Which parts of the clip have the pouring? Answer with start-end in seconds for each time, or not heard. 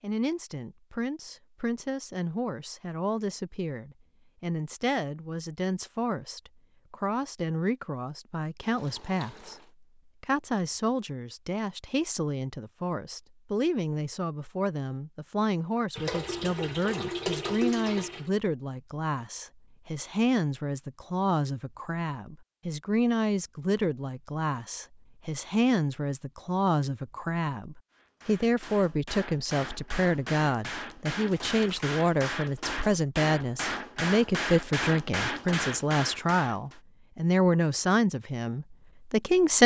8.6-9.7, 15.9-18.3, 31.3-31.9.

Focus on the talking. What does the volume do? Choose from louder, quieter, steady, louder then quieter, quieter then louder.
louder.